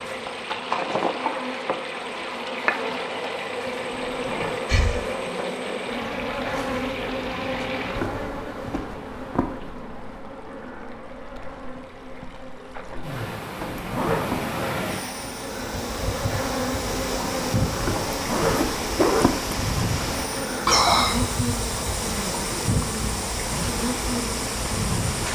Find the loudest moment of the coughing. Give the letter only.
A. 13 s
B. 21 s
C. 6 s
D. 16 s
B.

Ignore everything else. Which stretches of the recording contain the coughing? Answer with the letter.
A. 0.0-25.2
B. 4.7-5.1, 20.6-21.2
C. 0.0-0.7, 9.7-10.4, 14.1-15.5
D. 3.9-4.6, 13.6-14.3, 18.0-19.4
B.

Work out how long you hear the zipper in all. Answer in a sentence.
You can hear the zipper for 3 seconds altogether.